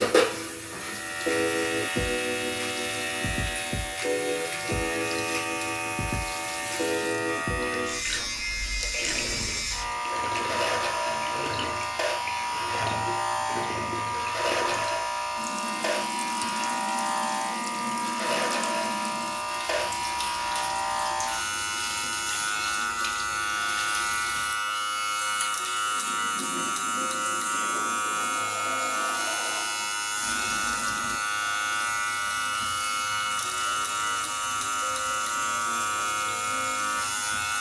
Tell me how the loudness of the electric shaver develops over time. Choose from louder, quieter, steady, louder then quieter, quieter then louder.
steady.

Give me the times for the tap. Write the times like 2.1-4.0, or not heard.
0.2-37.5.